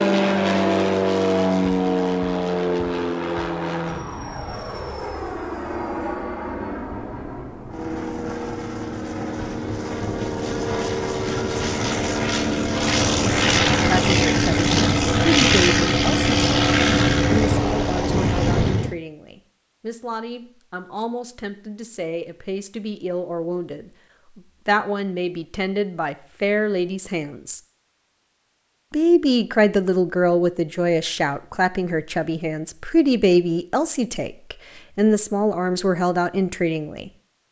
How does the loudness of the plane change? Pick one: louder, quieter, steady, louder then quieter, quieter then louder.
quieter then louder.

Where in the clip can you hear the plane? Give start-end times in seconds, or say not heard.
0.0-18.9.